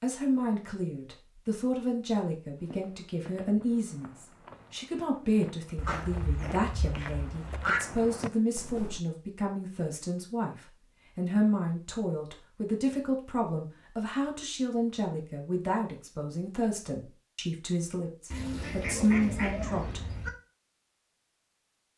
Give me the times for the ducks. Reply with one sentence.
The ducks can be heard from 5.8 to 7.8 s and from 18.3 to 20.3 s.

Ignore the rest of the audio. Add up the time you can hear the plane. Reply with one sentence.
The plane can't be heard in this clip.